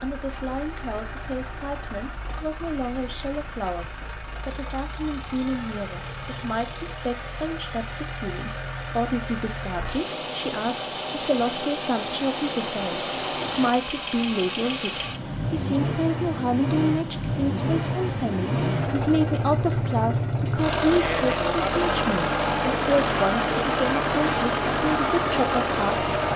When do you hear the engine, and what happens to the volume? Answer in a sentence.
The engine can be heard from 0.0 to 26.3 s, getting louder.